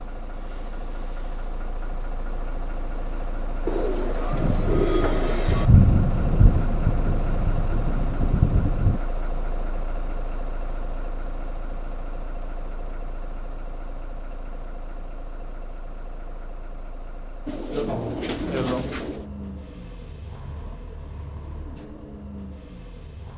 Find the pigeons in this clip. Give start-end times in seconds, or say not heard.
3.6-5.7, 17.4-19.2.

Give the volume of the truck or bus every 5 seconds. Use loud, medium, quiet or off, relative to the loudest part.
loud, loud, medium, medium, medium.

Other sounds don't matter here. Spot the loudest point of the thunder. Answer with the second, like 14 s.
6 s.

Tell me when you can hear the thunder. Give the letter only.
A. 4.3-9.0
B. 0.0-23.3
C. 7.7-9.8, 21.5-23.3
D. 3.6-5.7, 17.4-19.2
A.